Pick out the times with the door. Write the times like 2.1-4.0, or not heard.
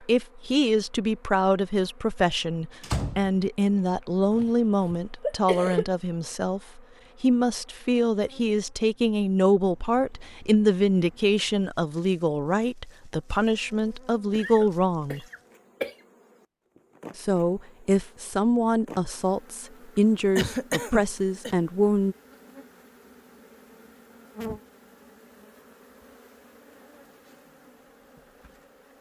2.8-3.3.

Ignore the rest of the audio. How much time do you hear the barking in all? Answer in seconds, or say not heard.
not heard.